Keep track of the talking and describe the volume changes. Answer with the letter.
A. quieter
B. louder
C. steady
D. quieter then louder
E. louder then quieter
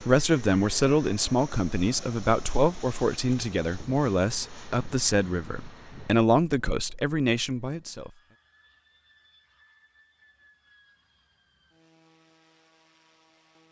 C.